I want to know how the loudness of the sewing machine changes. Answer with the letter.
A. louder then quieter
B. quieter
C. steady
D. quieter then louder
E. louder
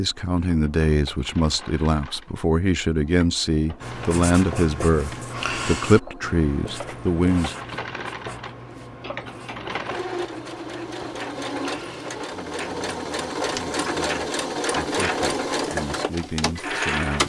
E.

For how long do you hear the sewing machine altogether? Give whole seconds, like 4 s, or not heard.
17 s.